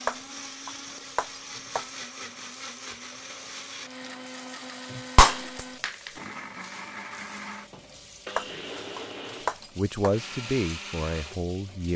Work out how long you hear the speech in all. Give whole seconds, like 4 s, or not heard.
2 s.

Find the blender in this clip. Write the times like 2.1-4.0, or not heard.
0.0-11.9.